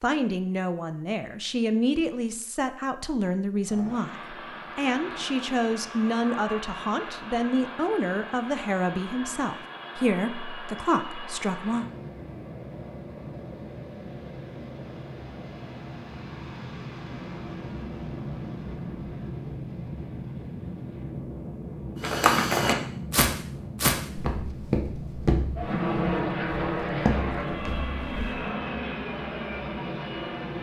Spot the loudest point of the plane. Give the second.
26 s.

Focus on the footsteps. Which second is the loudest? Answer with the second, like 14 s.
22 s.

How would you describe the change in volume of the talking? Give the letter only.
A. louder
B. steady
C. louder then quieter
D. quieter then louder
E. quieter
B.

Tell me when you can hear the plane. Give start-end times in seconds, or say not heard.
3.5-30.5.